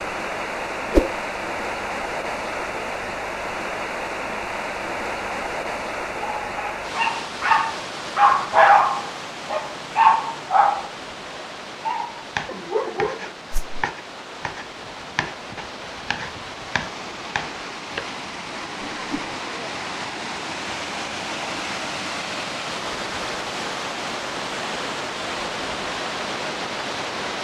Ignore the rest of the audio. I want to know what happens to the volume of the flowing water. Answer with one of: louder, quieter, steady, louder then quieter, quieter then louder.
quieter then louder.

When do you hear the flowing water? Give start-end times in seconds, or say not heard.
0.0-27.4.